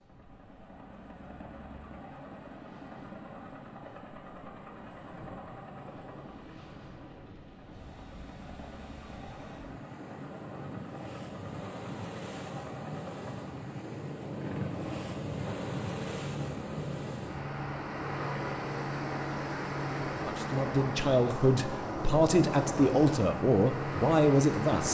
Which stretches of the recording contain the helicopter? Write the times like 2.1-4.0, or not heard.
0.0-24.8.